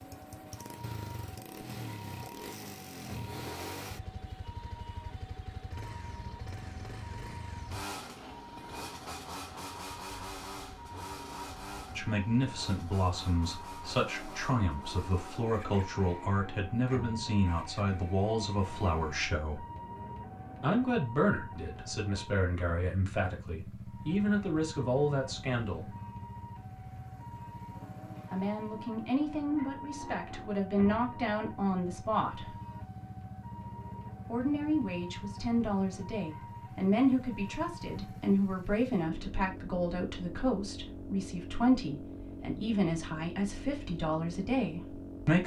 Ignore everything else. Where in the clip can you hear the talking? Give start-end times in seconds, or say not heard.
11.9-19.6, 20.6-25.9, 28.3-32.5, 34.2-45.4.